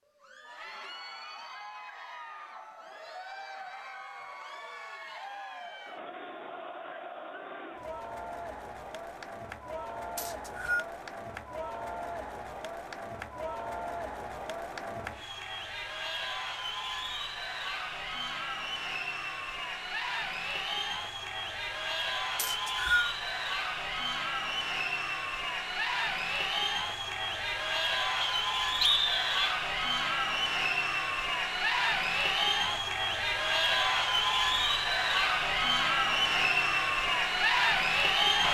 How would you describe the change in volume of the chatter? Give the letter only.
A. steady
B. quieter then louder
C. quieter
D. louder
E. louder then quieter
D.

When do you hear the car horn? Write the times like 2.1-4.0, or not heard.
not heard.